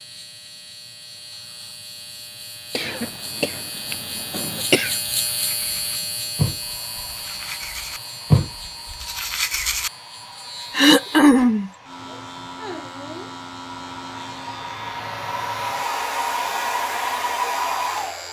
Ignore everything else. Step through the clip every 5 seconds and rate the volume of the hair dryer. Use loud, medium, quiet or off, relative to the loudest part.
off, quiet, quiet, loud.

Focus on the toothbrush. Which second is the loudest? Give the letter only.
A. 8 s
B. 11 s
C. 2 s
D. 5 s
A.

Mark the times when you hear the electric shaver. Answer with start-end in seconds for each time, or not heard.
0.0-18.2.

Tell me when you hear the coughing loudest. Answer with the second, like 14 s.
11 s.